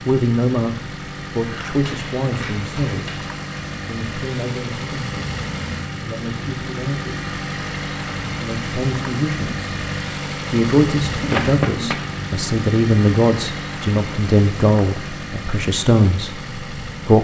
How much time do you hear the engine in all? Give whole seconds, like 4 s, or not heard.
17 s.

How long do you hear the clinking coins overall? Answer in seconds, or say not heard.
3 s.